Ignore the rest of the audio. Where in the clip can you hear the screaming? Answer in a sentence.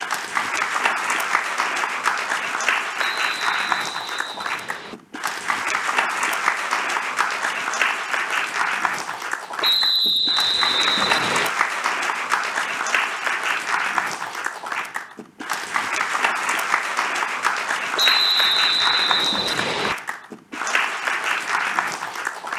The screaming can't be heard in this clip.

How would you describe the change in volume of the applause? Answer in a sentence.
The loudness of the applause stays about the same.